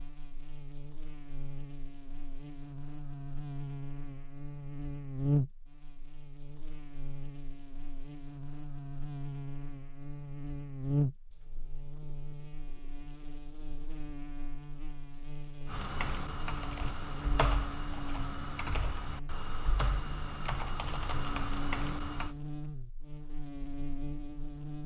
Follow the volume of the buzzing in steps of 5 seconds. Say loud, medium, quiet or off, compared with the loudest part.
medium, loud, loud, medium, medium.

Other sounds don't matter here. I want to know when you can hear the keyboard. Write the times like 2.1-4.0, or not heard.
15.7-22.4.